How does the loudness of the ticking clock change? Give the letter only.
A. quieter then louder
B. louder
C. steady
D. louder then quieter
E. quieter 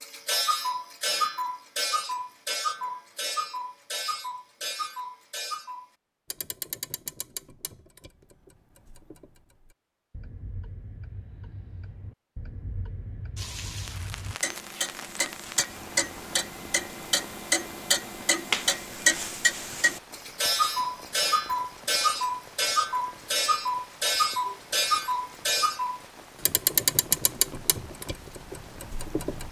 A.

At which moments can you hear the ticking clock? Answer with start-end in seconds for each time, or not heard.
0.0-29.4.